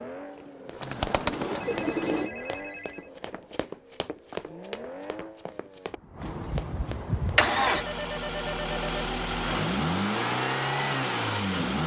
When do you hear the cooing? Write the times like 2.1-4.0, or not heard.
0.0-2.3.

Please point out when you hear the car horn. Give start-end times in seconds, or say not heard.
not heard.